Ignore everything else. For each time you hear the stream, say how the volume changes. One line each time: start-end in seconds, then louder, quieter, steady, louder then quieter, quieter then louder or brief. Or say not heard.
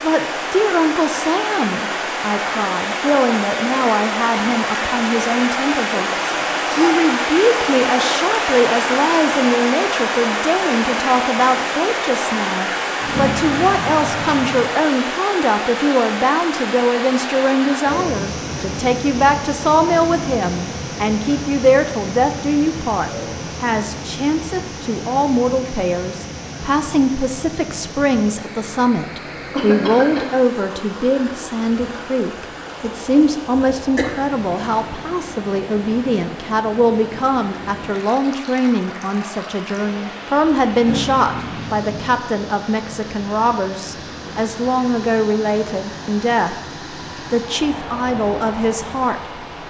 0.0-49.6 quieter.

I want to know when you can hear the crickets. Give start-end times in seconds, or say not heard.
not heard.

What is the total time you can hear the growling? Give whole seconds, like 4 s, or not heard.
4 s.